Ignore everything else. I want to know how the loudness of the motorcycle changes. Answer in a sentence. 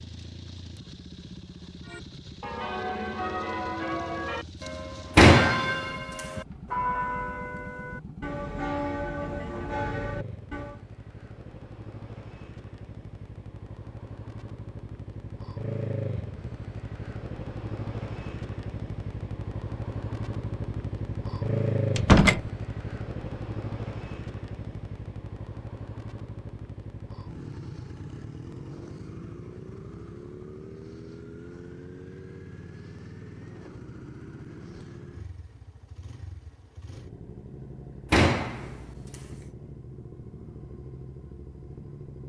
The loudness of the motorcycle goes up, then down.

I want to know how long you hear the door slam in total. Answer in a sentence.
You can hear the door slam for 3 seconds altogether.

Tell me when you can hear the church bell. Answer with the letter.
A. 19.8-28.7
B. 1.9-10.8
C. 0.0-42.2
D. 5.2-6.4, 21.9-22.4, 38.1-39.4
B.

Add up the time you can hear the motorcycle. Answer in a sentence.
You can hear the motorcycle for 42 seconds altogether.